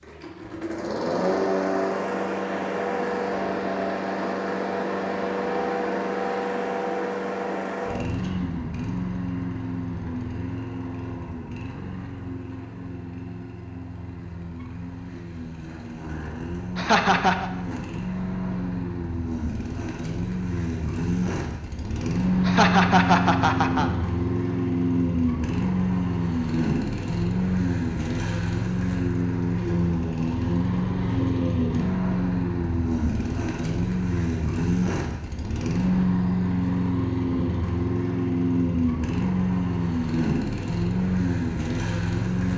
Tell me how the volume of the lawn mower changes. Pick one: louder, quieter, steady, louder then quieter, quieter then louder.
quieter then louder.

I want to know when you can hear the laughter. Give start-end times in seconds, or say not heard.
16.8-17.5, 22.4-23.9.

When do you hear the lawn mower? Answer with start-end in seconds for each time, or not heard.
0.0-42.5.